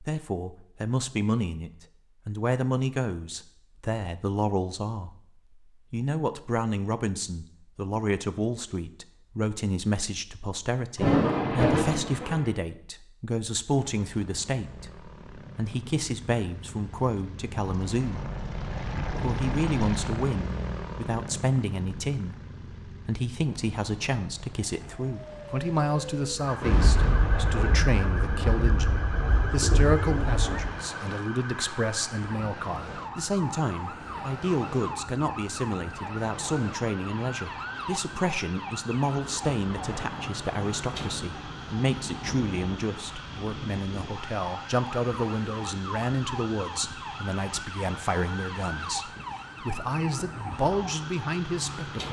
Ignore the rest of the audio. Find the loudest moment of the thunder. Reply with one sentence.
The loudest moment of the thunder is at 11 seconds.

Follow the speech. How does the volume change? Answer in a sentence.
The loudness of the speech stays about the same.